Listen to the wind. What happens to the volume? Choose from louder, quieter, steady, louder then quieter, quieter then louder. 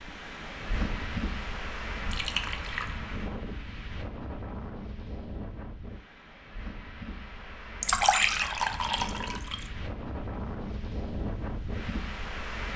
quieter then louder.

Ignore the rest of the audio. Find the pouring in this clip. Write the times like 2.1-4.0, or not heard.
2.0-3.0, 7.8-9.7.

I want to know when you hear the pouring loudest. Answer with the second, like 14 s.
8 s.